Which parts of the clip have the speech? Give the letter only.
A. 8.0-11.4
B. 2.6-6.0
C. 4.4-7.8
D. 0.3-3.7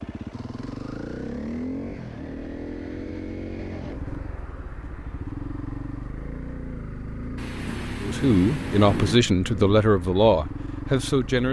A.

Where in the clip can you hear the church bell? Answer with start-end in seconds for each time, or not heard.
not heard.